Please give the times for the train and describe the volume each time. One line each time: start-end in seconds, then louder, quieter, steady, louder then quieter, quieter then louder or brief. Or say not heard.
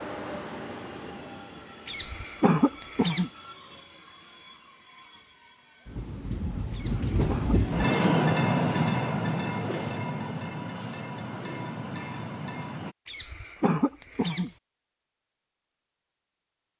0.0-12.9 louder then quieter.